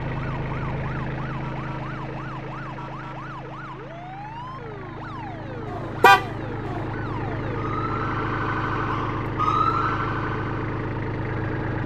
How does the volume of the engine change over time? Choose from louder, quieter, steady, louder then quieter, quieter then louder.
quieter then louder.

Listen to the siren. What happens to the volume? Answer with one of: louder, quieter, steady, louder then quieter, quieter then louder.
louder.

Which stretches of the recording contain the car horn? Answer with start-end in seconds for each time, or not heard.
5.7-6.8.